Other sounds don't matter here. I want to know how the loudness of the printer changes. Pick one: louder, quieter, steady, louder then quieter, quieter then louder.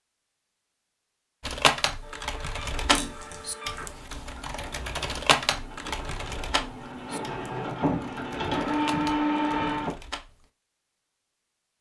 louder.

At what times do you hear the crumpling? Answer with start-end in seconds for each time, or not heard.
2.9-3.9.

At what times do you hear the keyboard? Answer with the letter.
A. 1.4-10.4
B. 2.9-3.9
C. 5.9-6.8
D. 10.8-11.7
A.